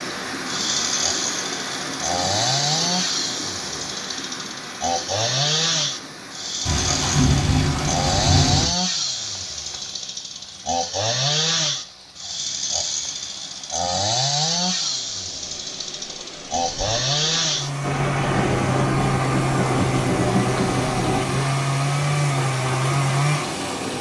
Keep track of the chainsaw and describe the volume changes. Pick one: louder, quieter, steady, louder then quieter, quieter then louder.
steady.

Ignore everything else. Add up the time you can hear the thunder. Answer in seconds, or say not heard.
6 s.